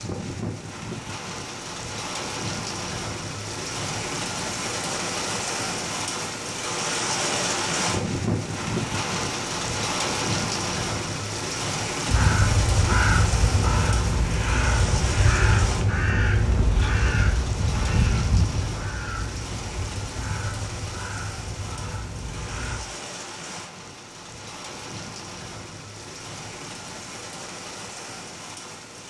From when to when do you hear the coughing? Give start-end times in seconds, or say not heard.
not heard.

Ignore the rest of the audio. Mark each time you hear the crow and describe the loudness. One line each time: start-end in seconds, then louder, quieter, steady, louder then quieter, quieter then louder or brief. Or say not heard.
12.1-22.8 quieter.